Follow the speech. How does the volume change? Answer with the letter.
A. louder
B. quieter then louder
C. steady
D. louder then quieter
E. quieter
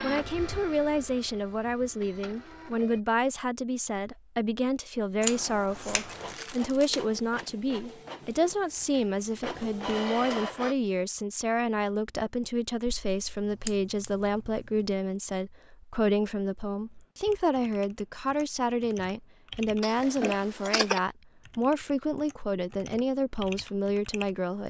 C.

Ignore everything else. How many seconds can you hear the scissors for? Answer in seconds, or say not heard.
4 s.